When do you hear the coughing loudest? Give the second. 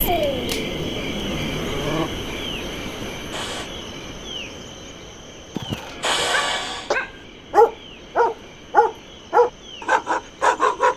6 s.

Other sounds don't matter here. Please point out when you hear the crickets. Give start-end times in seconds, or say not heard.
0.0-10.9.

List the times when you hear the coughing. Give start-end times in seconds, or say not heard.
2.9-3.7, 5.5-7.0.